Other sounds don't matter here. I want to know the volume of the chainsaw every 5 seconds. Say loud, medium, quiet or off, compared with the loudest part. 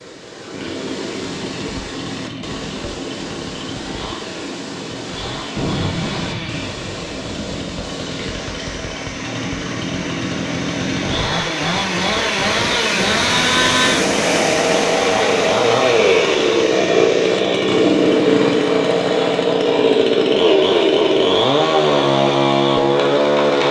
quiet, quiet, medium, loud, loud.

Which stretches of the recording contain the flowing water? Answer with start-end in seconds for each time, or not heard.
0.0-19.6.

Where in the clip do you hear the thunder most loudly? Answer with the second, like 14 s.
6 s.